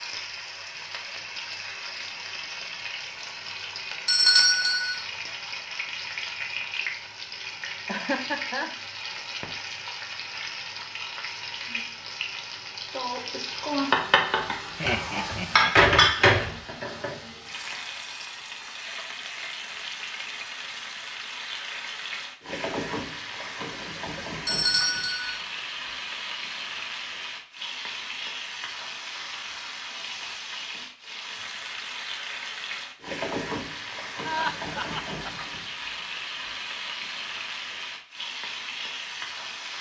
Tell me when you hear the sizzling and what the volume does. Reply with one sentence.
You can hear the sizzling from 0.0 to 39.7 s, getting louder then quieter.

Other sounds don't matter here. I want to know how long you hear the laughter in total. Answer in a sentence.
You can hear the laughter for 3 seconds altogether.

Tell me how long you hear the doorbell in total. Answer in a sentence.
You can hear the doorbell for 2 seconds altogether.